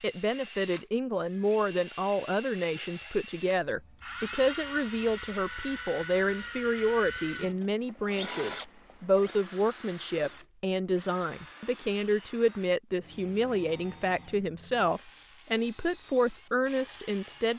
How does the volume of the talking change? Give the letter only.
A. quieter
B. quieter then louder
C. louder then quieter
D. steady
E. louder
D.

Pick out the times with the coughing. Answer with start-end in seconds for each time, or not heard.
not heard.